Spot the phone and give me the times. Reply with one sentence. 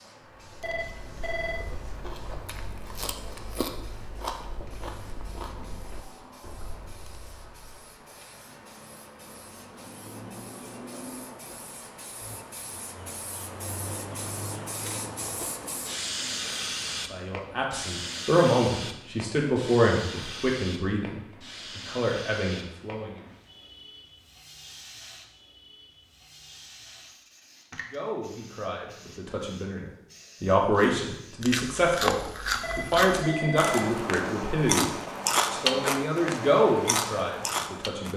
You can hear the phone from 0.6 to 1.6 s and from 32.6 to 33.8 s.